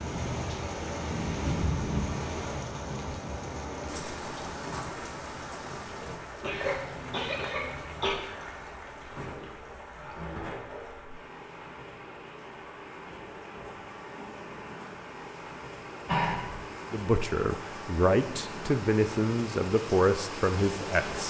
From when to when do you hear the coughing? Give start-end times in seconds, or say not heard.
6.4-8.2, 16.1-16.6.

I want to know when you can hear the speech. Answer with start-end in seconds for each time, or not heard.
16.9-21.2.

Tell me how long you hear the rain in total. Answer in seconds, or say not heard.
21 s.